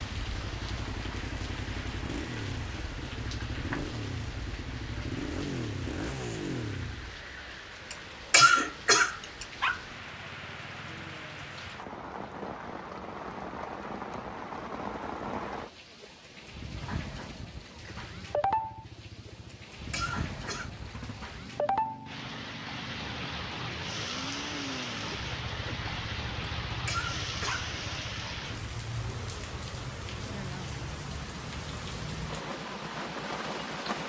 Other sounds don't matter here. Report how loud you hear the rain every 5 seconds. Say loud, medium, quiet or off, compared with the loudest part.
medium, medium, loud, loud, loud, loud, loud.